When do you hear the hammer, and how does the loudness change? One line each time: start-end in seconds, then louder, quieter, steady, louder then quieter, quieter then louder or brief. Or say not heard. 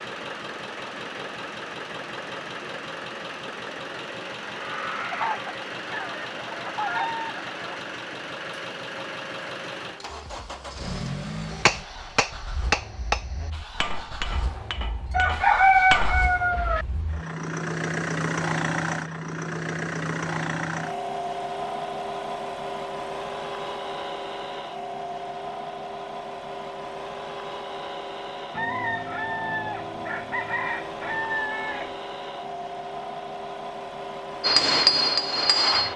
11.7-16.2 quieter
34.4-35.9 brief.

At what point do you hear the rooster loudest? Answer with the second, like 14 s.
16 s.